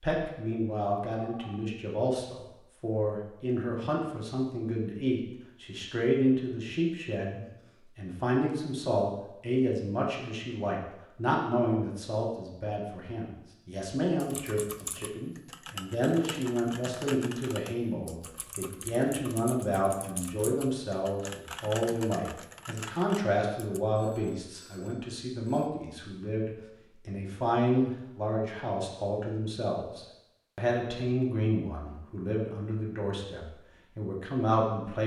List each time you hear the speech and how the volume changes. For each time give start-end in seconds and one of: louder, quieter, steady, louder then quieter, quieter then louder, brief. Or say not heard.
0.0-35.0 steady.